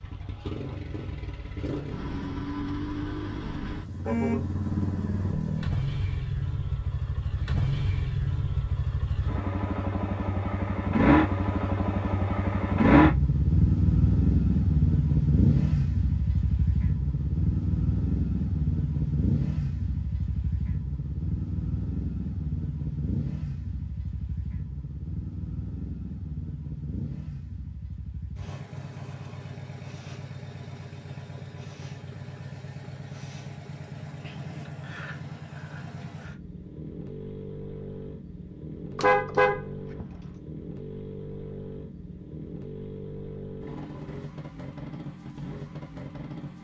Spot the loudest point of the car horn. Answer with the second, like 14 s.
39 s.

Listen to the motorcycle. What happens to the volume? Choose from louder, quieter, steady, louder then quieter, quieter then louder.
louder then quieter.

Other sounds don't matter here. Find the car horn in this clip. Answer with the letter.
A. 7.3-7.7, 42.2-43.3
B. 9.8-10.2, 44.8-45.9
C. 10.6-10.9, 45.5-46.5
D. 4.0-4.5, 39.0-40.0
D.